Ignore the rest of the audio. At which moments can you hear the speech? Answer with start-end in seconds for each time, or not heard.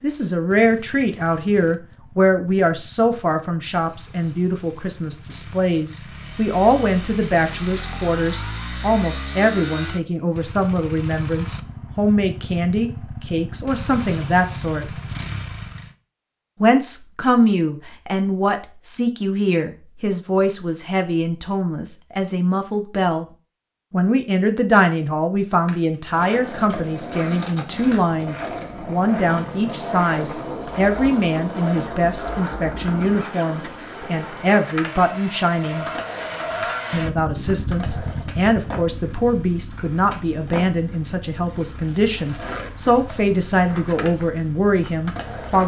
0.0-14.8, 16.6-23.2, 23.9-35.9, 36.9-45.6.